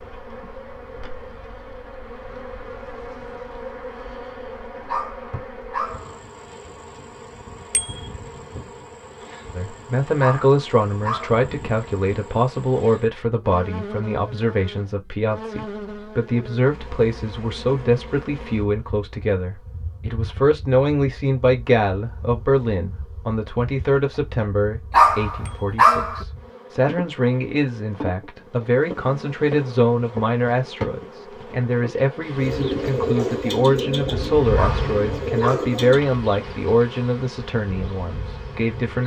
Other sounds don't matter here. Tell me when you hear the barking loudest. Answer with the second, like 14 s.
25 s.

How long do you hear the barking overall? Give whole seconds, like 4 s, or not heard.
5 s.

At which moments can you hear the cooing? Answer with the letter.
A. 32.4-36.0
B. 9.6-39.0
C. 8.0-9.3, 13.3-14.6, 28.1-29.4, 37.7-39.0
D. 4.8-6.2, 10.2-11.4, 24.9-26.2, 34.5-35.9
A.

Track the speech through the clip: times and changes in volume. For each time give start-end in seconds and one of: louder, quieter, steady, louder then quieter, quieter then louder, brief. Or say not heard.
9.6-39.0 steady.